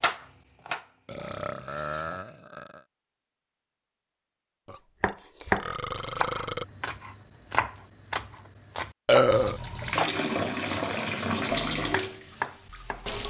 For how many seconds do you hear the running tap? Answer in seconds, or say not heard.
4 s.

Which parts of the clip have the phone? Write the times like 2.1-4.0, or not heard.
not heard.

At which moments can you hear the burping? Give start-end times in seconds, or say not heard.
1.1-2.9, 4.7-6.7, 9.1-9.6.